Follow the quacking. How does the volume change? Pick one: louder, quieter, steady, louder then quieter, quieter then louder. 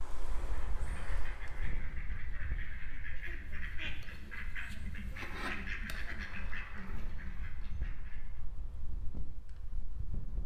louder then quieter.